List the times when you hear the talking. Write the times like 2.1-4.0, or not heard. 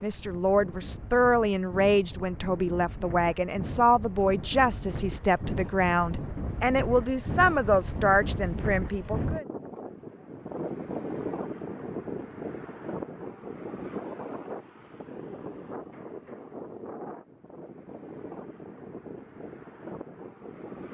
0.0-9.4.